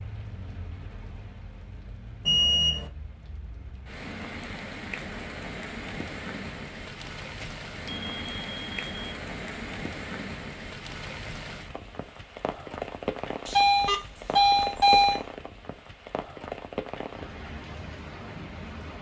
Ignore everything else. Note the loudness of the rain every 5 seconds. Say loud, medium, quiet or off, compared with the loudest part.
medium, loud, loud, loud.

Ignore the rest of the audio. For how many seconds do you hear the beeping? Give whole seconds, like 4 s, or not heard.
4 s.